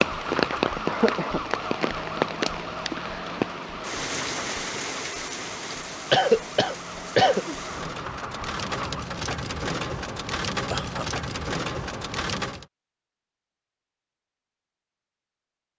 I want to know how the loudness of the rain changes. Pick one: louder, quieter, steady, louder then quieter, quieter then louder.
quieter then louder.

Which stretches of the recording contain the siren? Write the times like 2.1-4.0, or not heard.
0.0-9.1.